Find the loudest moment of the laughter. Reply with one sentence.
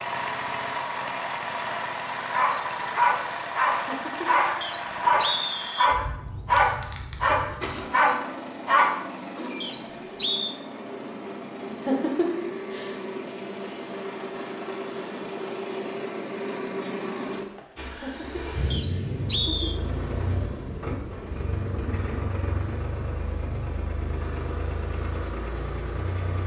The volume of the laughter peaks at 12 seconds.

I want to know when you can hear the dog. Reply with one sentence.
You can hear the dog from 2.3 to 9.5 s.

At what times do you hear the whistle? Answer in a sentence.
The whistle can be heard from 4.6 to 6.0 s, from 9.6 to 10.6 s and from 18.7 to 19.8 s.